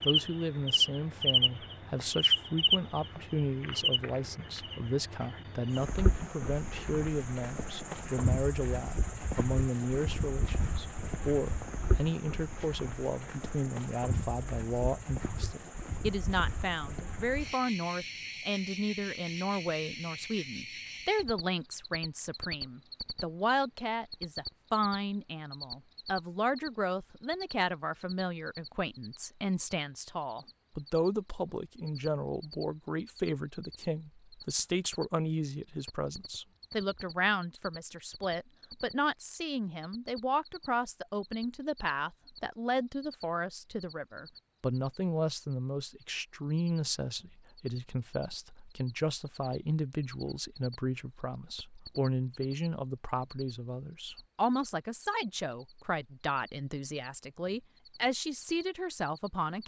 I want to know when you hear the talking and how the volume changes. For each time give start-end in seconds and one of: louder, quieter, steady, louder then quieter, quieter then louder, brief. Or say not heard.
0.1-59.6 steady.